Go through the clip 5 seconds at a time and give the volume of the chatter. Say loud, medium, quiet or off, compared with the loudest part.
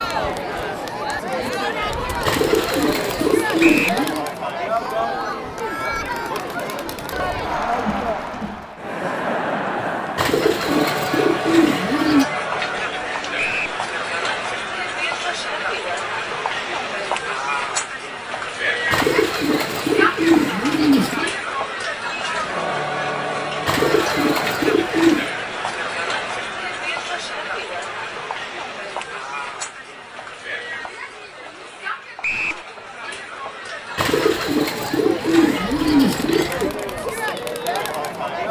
loud, loud, loud, loud, loud, loud, medium, loud.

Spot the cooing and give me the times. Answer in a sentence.
You can hear the cooing from 2.2 to 4.2 s, from 10.2 to 12.2 s, from 18.9 to 21.3 s, from 23.6 to 25.3 s and from 34.0 to 36.7 s.